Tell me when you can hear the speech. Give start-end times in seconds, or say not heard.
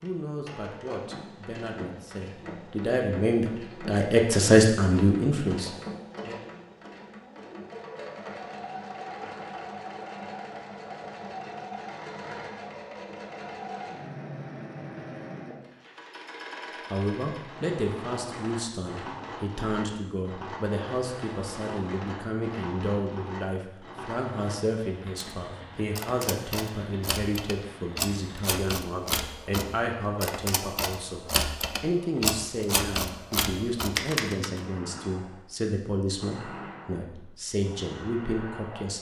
0.0-6.4, 16.9-38.9.